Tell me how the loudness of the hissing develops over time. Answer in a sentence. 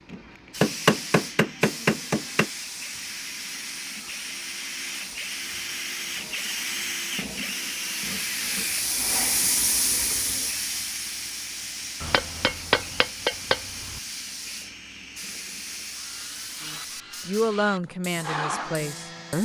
The loudness of the hissing goes up, then down.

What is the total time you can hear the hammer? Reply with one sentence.
You can hear the hammer for 4 seconds altogether.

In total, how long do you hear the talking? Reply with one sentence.
The talking can be heard for 3 seconds in total.